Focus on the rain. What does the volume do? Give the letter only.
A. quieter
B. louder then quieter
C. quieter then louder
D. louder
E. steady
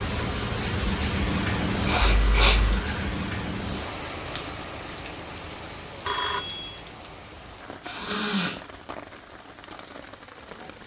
A.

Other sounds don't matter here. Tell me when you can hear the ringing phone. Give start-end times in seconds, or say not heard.
2.0-2.9, 6.0-6.8.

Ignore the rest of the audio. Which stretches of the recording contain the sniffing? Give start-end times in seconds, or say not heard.
1.9-3.1, 7.8-8.6.